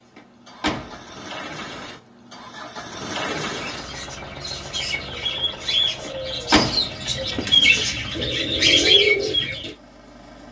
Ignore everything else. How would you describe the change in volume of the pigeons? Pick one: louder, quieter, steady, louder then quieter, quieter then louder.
louder.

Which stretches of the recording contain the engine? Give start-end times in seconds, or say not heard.
0.0-10.4.